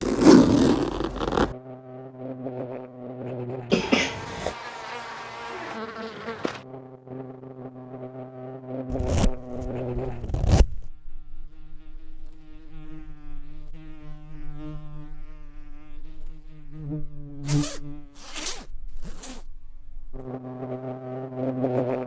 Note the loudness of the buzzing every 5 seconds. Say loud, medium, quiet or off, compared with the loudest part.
medium, medium, quiet, medium, loud.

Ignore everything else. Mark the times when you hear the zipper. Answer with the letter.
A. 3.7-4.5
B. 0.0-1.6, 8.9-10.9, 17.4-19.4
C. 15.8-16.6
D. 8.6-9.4
B.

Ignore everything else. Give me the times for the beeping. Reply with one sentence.
The beeping can't be heard in this clip.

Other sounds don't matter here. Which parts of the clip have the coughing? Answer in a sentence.
You can hear the coughing from 3.7 to 4.5 s.